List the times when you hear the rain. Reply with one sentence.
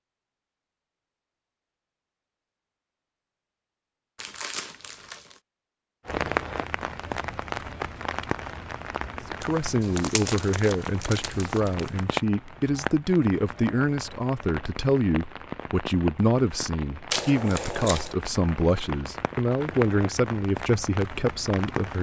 You can hear the rain from 6.0 to 21.9 s.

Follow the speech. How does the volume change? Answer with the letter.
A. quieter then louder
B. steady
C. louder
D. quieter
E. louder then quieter
B.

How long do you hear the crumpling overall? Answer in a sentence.
The crumpling can be heard for 5 seconds in total.